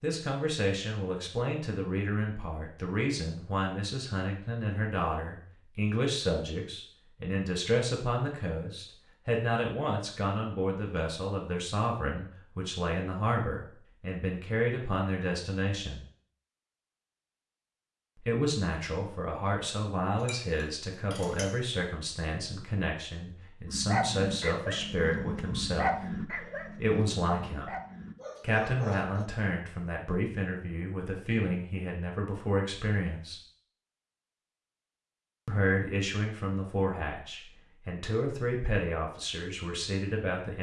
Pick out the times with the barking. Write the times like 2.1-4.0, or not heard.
23.6-29.2.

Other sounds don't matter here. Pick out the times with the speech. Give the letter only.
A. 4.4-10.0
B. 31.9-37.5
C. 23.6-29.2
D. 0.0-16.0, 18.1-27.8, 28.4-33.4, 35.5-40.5
D.